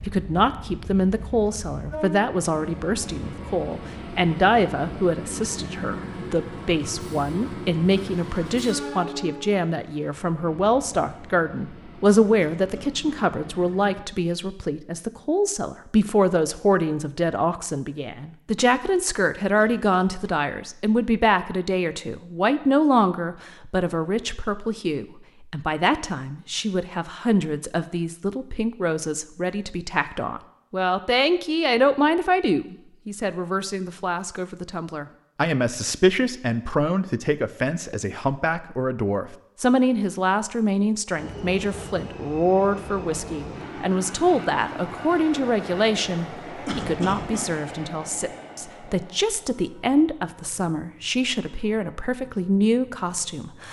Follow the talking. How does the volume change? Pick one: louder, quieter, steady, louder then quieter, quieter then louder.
steady.